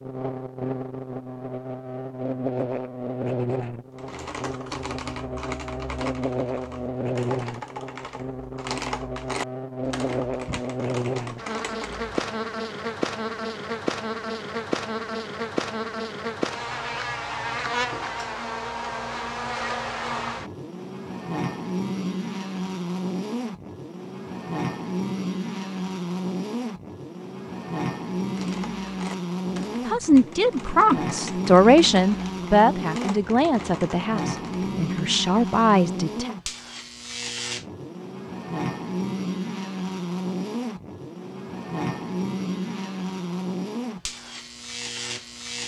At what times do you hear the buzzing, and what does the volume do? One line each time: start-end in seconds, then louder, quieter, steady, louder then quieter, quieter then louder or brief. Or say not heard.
0.0-45.6 steady.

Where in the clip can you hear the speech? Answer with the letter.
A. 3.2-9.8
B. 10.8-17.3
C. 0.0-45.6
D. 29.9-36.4
D.